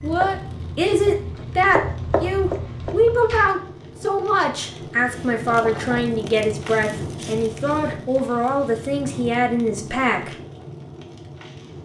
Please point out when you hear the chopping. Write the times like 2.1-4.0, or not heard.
0.0-3.5.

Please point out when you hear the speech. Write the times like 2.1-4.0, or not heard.
0.0-10.3.